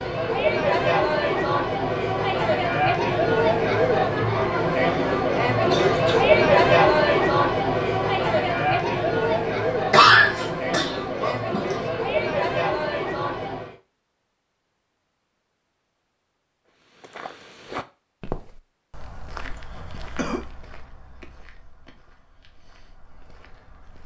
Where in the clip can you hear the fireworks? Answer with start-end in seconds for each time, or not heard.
not heard.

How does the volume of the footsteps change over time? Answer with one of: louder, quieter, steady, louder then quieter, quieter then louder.
quieter.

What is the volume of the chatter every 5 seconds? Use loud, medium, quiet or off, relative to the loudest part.
loud, loud, medium, off, off.